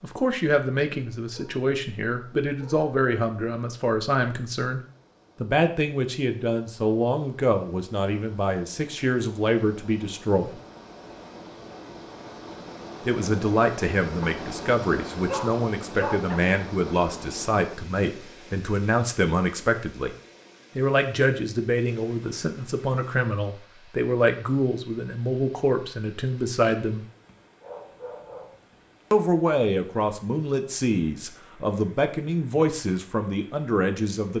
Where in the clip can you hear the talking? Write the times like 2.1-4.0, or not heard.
0.0-4.8, 5.4-10.6, 13.1-20.1, 20.8-27.1, 29.1-34.3.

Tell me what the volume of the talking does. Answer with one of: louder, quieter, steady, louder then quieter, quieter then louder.
steady.